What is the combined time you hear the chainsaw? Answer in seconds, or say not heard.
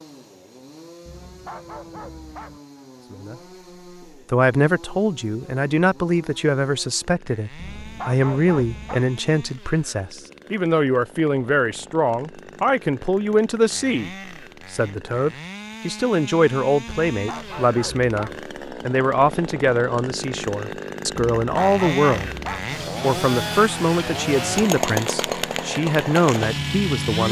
27 s.